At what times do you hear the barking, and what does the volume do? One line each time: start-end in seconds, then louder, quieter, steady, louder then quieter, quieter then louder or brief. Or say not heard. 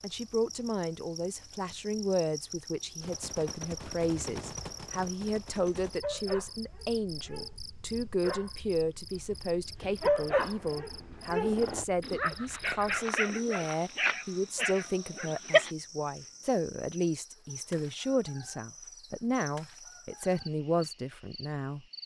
6.0-8.5 brief
9.3-15.7 quieter.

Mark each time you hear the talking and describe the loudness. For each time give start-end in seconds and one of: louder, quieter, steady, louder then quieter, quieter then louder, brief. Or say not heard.
0.0-21.9 steady.